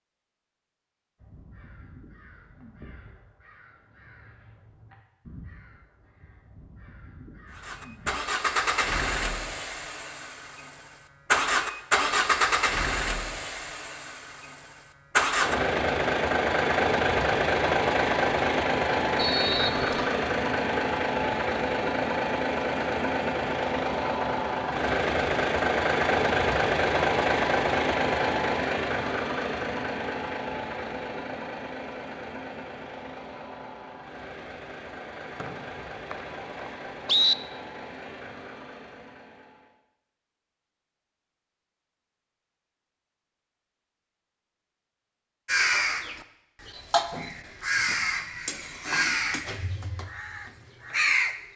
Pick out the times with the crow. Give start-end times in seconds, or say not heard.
1.1-8.2, 45.5-51.4.